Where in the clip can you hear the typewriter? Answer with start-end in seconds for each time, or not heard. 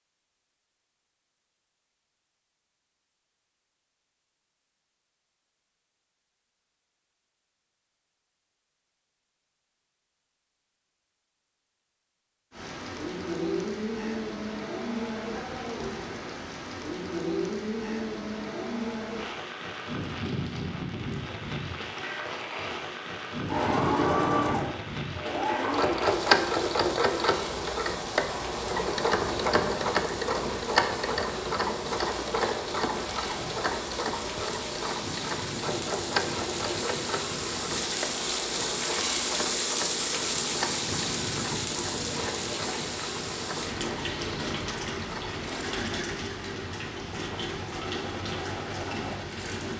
not heard.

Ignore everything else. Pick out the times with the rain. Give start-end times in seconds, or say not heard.
12.5-49.7.